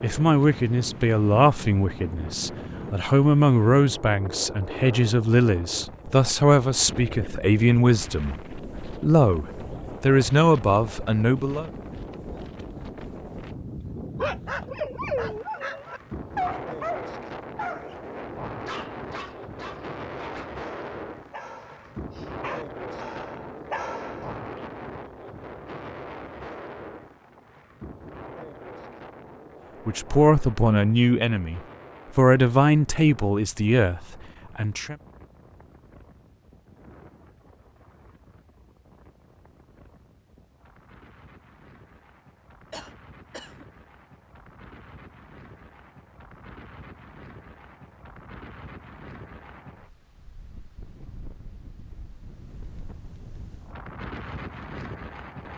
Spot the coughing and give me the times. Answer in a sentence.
You can hear the coughing from 42.7 to 43.6 s.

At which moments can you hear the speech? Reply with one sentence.
You can hear the speech from 0.0 to 11.7 s and from 29.9 to 35.0 s.